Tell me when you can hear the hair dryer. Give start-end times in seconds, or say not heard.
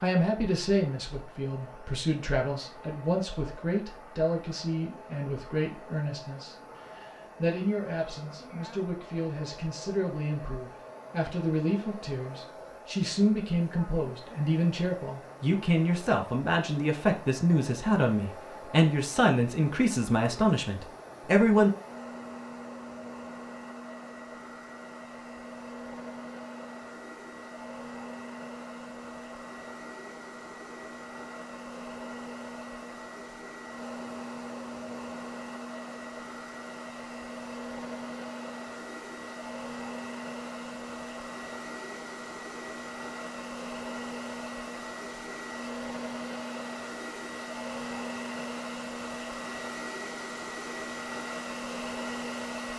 0.1-52.7.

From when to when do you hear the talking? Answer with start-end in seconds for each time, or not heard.
0.0-21.7.